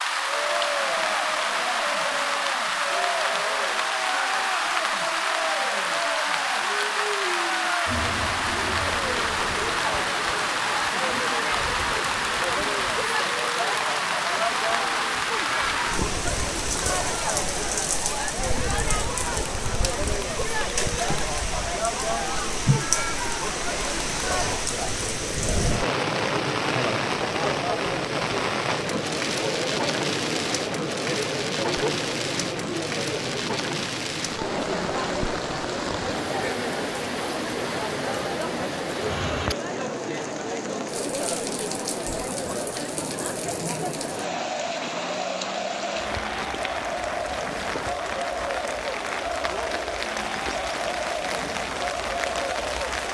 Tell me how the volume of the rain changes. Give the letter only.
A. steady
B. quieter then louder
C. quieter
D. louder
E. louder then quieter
C.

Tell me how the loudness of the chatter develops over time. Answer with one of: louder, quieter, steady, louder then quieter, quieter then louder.
steady.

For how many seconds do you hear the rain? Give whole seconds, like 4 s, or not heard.
53 s.